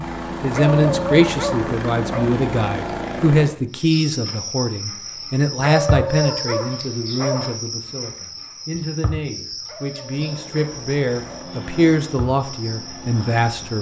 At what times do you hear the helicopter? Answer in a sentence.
The helicopter can be heard from 0.0 to 3.5 s and from 10.1 to 13.7 s.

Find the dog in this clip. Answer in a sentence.
The dog can be heard from 0.6 to 2.3 s, from 5.6 to 7.5 s and from 9.7 to 11.6 s.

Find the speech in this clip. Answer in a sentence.
You can hear the speech from 0.0 to 13.7 s.